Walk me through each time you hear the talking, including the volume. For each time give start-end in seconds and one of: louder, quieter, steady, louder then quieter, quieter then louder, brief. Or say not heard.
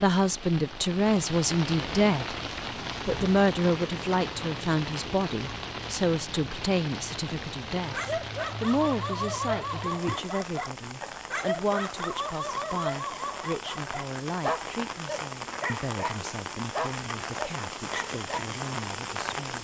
0.0-2.4 brief
3.0-19.5 quieter.